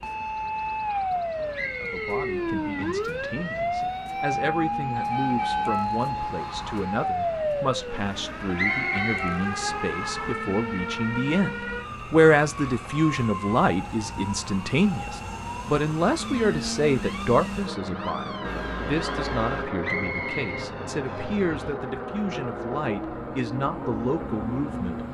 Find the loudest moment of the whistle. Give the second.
9 s.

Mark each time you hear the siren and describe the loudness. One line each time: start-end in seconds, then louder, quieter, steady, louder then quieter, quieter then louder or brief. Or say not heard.
0.0-25.0 quieter.